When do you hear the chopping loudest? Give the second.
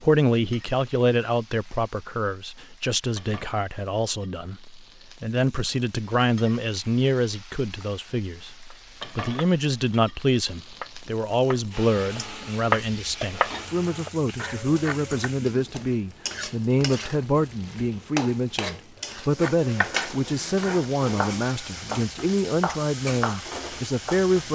13 s.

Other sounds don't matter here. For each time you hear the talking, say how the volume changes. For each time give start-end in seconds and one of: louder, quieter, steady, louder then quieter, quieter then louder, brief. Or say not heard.
0.0-24.5 steady.